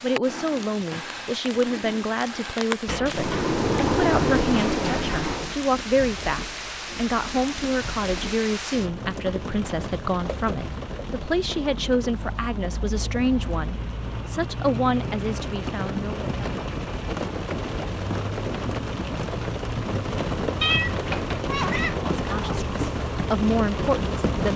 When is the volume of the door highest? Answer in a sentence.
The loudest moment of the door is at 4 seconds.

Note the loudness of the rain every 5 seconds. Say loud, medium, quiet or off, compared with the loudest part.
medium, medium, medium, loud, loud.